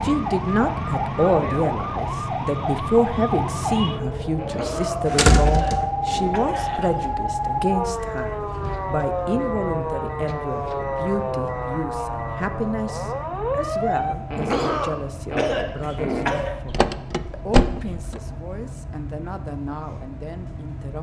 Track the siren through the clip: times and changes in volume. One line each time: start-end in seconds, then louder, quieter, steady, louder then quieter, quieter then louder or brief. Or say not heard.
0.0-14.2 steady.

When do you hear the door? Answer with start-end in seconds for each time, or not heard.
5.0-5.9, 16.6-18.2.